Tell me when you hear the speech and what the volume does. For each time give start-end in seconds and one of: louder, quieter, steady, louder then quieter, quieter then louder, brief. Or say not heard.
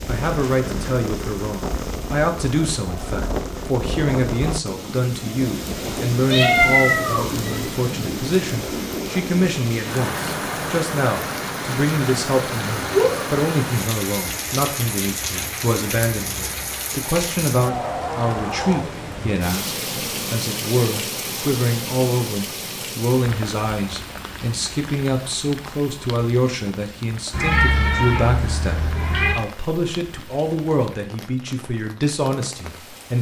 0.1-33.1 steady.